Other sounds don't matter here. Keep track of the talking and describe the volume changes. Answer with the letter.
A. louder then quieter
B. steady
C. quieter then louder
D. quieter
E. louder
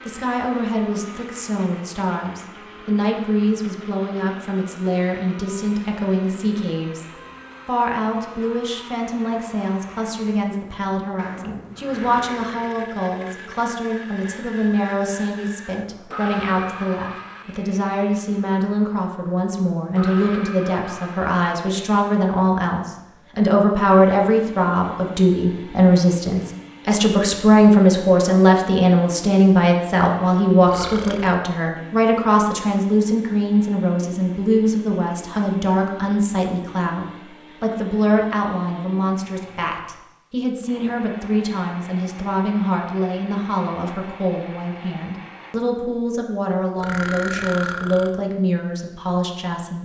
A.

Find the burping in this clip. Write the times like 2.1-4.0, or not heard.
11.2-12.7, 30.6-31.4, 46.8-48.1.